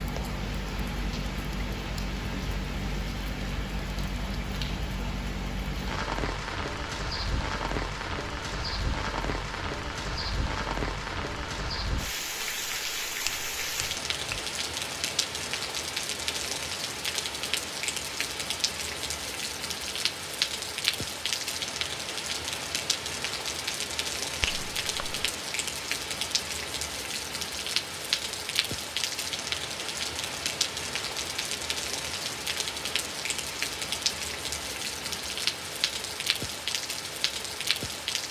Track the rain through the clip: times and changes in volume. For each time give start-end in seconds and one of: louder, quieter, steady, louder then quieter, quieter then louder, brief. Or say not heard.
0.0-38.2 steady.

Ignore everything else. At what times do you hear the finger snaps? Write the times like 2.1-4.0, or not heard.
13.2-14.5, 24.4-25.3.